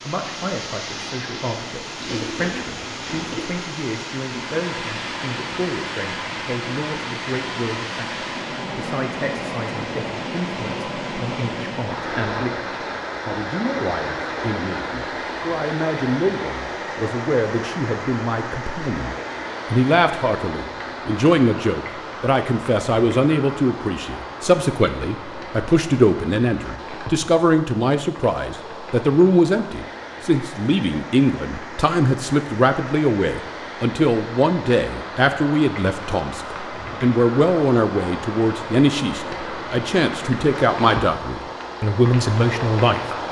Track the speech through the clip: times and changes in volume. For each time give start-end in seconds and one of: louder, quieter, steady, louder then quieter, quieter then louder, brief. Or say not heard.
0.0-43.0 louder.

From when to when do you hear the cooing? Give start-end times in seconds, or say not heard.
1.9-3.5.